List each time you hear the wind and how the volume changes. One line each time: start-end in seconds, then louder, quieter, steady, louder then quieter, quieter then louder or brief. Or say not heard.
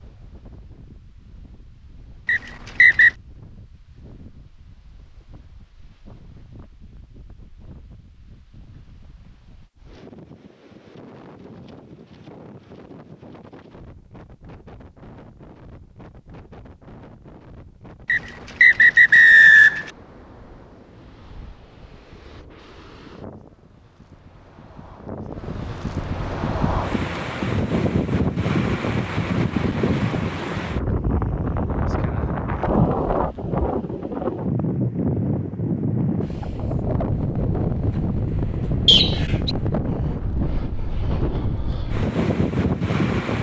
0.0-43.3 louder.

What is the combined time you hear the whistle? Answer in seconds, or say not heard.
3 s.